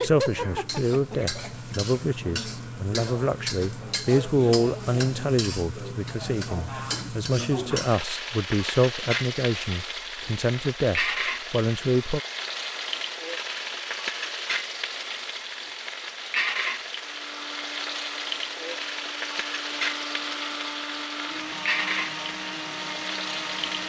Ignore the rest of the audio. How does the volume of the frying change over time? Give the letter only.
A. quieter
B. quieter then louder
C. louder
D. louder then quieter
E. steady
E.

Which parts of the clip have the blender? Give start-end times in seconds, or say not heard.
17.0-23.8.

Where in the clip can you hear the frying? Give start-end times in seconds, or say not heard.
0.0-23.8.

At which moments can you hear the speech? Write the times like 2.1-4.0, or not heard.
0.0-12.2.